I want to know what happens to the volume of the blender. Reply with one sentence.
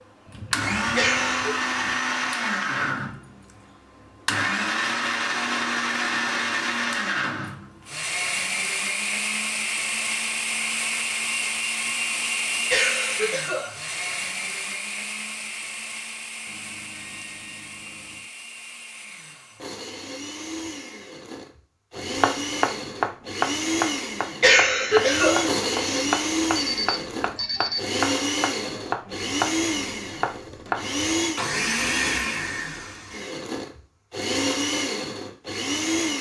The loudness of the blender goes down, then up.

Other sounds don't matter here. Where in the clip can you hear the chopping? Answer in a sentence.
You can hear the chopping from 21.9 to 30.9 s.